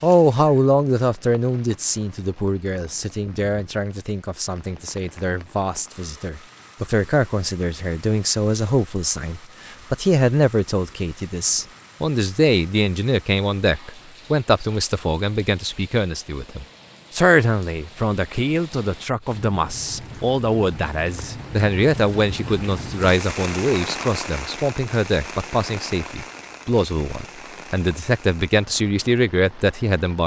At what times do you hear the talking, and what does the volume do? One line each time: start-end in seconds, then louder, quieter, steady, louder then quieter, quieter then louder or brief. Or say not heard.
0.0-30.2 steady.